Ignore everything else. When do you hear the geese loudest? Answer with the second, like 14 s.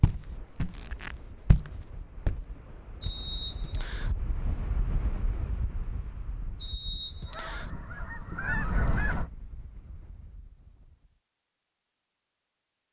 9 s.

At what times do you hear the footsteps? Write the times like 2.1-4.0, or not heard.
0.0-3.2.